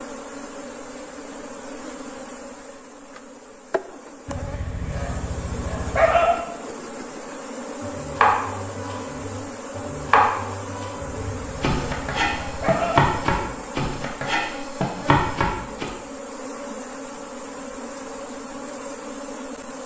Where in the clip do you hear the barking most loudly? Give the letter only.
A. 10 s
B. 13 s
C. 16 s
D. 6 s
D.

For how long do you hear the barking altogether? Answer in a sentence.
The barking can be heard for 4 seconds in total.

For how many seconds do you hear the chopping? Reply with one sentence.
You can hear the chopping for 8 seconds altogether.